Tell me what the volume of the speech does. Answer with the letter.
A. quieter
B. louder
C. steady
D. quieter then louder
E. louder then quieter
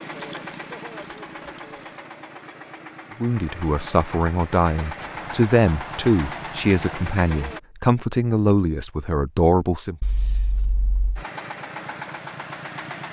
C.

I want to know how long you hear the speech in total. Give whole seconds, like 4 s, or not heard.
7 s.